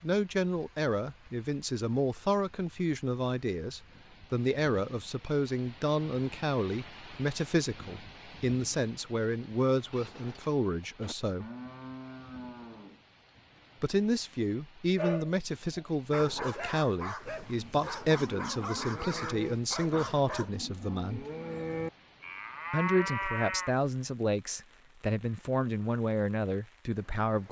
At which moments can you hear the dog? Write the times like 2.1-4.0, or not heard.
14.9-20.6.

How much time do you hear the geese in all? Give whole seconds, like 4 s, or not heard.
not heard.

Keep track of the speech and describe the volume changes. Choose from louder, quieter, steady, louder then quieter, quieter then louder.
steady.